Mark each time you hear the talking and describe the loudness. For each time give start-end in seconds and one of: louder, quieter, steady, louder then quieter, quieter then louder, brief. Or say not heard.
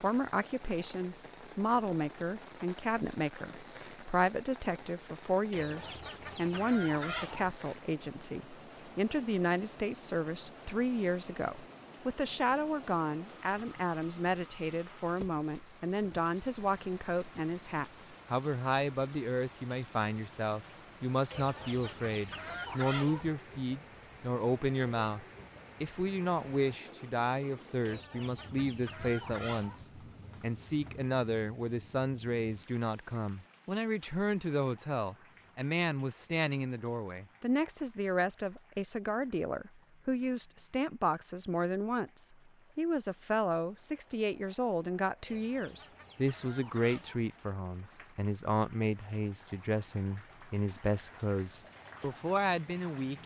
0.0-53.2 steady.